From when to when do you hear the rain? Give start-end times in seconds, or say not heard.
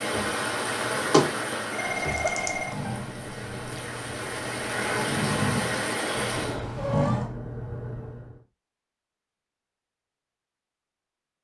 0.0-6.6.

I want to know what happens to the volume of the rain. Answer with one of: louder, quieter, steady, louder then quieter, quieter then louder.
quieter then louder.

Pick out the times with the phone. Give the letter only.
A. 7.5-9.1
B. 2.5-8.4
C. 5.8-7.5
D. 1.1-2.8
D.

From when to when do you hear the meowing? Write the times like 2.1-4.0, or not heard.
1.9-3.9, 6.3-7.3.